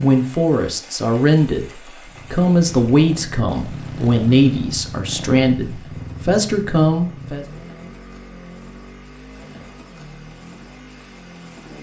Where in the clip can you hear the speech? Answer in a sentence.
The speech can be heard from 0.0 to 7.5 s.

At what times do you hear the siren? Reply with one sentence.
The siren can't be heard in this clip.